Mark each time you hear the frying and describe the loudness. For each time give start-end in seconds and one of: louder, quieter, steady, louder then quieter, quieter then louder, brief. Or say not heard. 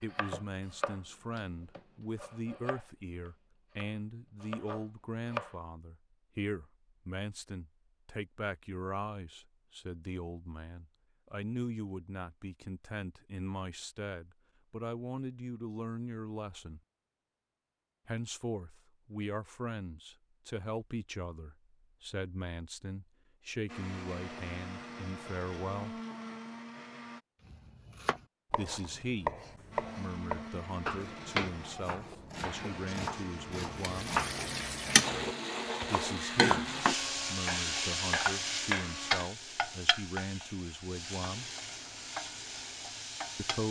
33.8-43.6 quieter.